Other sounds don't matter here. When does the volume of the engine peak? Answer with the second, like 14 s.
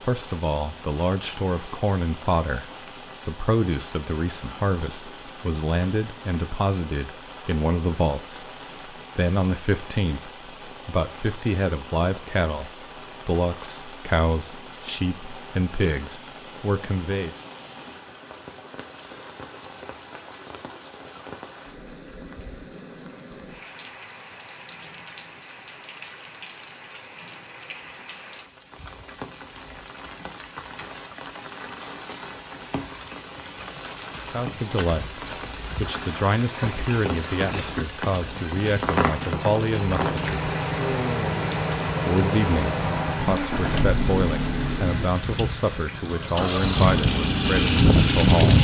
48 s.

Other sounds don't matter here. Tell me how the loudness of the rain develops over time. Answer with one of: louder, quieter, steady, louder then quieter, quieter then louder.
louder.